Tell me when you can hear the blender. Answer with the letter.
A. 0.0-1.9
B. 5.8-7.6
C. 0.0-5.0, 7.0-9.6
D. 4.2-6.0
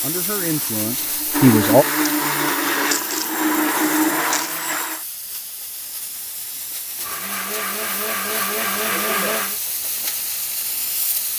C.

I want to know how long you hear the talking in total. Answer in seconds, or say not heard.
2 s.